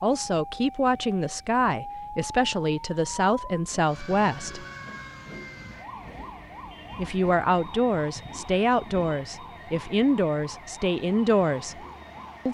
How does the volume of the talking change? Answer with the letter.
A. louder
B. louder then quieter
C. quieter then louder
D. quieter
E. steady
E.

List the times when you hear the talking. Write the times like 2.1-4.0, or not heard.
0.0-4.7, 7.0-11.8.